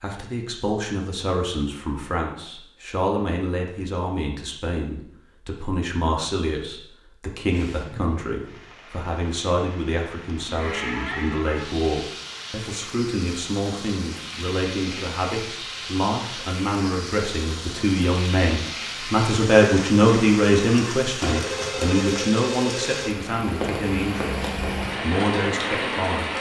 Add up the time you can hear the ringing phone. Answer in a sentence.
You can hear the ringing phone for 2 seconds altogether.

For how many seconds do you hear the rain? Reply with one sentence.
You can hear the rain for 19 seconds altogether.